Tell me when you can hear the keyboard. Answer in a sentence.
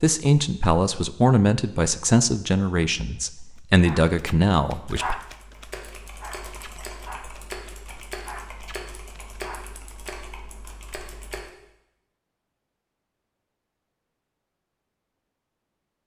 The keyboard can be heard from 4.7 to 11.5 s.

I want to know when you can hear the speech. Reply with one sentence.
You can hear the speech from 0.0 to 5.2 s.